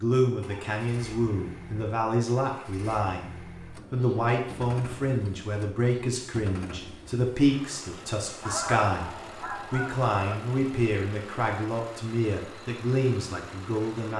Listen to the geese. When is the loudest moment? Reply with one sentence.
The volume of the geese peaks at 9 seconds.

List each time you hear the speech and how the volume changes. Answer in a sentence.
The speech can be heard from 0.0 to 14.1 s, at a steady volume.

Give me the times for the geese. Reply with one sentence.
The geese can be heard from 8.4 to 10.1 s.